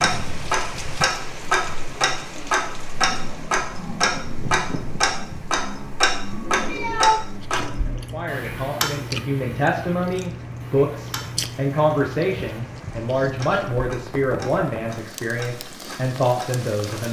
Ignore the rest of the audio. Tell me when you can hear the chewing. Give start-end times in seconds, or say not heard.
7.3-13.8.